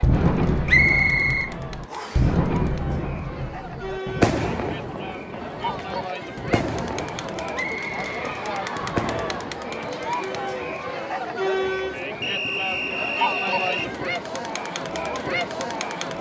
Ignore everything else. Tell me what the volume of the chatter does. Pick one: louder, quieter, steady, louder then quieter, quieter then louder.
louder.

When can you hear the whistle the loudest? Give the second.
1 s.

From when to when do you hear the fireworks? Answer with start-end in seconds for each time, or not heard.
0.0-9.5.